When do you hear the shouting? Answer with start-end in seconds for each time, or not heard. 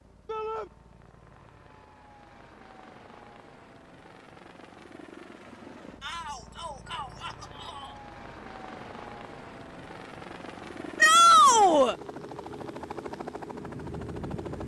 0.2-0.7, 6.0-8.0, 11.0-11.9.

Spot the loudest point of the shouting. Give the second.
11 s.